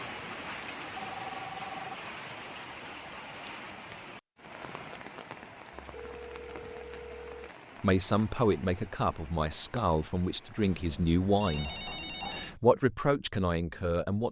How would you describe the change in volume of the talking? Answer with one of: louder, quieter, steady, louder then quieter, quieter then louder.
steady.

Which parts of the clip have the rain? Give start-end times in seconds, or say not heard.
0.0-10.8.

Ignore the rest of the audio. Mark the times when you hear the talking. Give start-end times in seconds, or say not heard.
7.8-14.2.